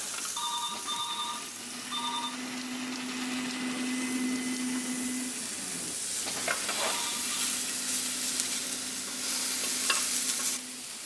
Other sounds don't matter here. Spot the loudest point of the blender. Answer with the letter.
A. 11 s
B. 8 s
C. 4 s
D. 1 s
C.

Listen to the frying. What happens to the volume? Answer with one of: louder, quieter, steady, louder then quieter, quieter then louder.
louder.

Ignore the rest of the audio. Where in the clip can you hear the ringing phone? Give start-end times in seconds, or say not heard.
0.3-2.4, 6.8-7.3.